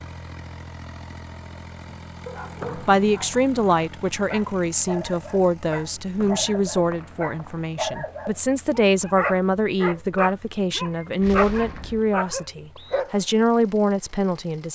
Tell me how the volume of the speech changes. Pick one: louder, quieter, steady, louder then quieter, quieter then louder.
steady.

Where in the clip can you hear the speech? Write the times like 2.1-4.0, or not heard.
2.8-14.7.